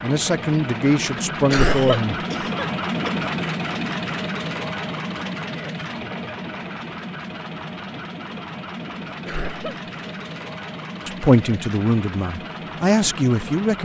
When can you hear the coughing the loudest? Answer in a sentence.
The loudest moment of the coughing is at 2 seconds.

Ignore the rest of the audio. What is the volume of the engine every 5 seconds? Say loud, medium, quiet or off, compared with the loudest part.
loud, medium, medium.